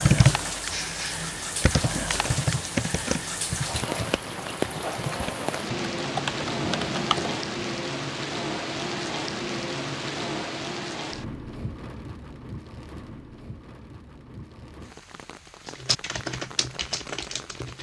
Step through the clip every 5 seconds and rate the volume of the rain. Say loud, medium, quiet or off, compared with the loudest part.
loud, loud, medium, quiet.